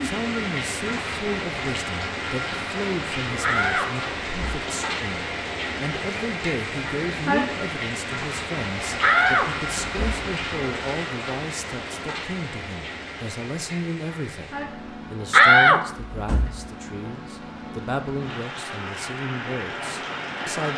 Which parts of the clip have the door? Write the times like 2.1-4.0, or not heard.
3.4-4.6, 9.0-10.2, 15.3-16.6.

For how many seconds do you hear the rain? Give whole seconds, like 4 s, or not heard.
21 s.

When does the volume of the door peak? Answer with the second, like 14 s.
16 s.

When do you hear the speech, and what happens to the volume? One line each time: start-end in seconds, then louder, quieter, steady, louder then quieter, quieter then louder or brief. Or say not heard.
0.0-20.7 steady.